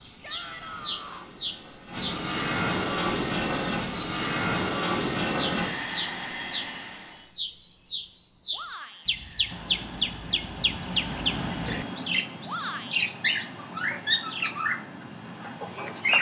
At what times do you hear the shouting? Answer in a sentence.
The shouting can be heard from 0.2 to 1.2 s, from 8.5 to 9.1 s and from 12.4 to 13.1 s.